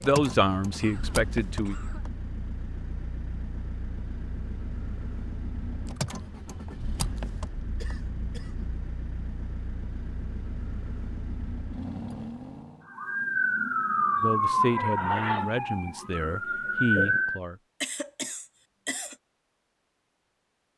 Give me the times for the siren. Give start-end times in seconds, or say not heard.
12.8-17.4.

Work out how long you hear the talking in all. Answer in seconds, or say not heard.
5 s.